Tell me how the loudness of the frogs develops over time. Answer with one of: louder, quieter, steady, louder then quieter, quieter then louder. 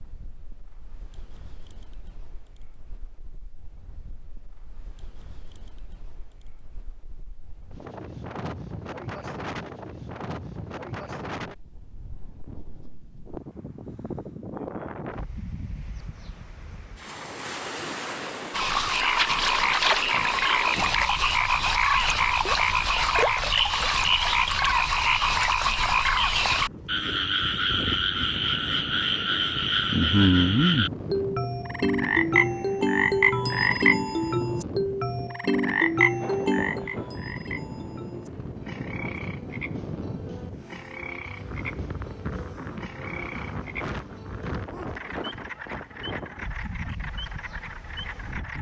quieter.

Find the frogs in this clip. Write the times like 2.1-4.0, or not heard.
18.5-48.5.